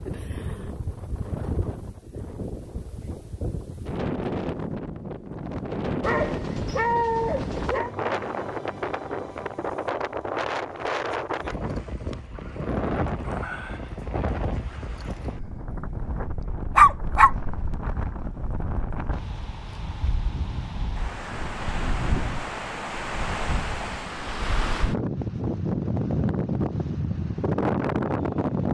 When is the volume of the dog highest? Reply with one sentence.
The volume of the dog peaks at 17 seconds.